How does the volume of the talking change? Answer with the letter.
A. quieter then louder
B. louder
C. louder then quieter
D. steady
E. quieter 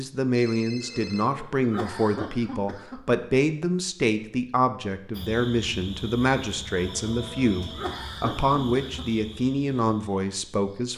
D.